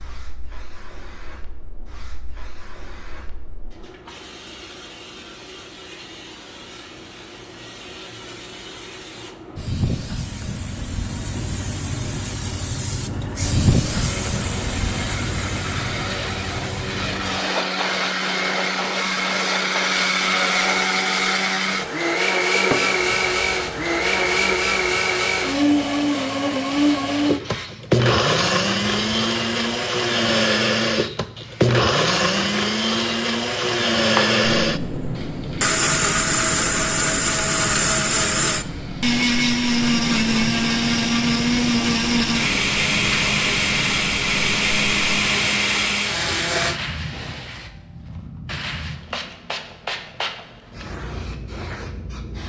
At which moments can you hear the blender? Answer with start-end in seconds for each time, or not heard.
13.3-46.8.